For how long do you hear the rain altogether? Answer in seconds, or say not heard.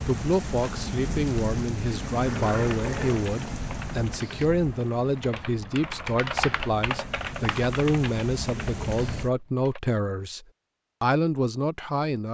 9 s.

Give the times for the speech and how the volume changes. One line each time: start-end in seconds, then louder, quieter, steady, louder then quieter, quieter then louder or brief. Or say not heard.
0.1-12.2 steady.